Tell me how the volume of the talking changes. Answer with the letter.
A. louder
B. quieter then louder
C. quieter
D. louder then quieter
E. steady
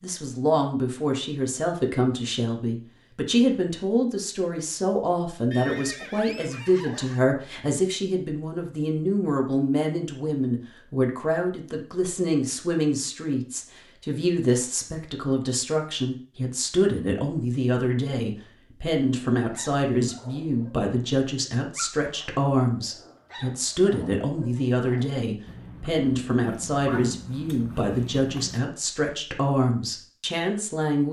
E.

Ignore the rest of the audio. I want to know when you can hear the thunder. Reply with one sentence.
You can't hear the thunder here.